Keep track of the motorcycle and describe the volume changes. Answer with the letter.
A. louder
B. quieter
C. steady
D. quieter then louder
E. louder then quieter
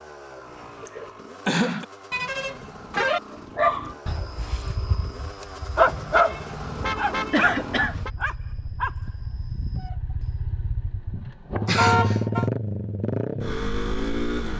A.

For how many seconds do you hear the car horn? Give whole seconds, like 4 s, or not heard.
4 s.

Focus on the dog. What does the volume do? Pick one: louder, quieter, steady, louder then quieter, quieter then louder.
louder then quieter.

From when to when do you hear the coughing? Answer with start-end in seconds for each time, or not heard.
0.8-1.9, 7.3-8.0, 11.7-12.2.